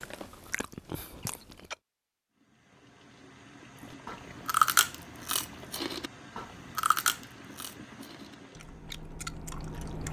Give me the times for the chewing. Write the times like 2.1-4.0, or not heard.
0.0-1.8, 4.0-10.0.